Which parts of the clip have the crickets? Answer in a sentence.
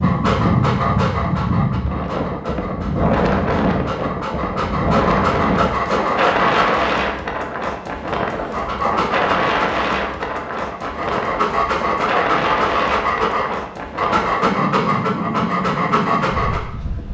You can't hear the crickets here.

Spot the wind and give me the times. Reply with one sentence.
The wind can be heard from 0.0 to 17.0 s.